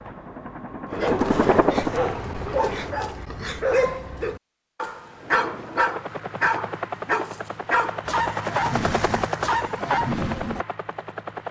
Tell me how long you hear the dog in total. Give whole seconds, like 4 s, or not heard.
10 s.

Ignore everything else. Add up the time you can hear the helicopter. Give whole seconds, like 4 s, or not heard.
9 s.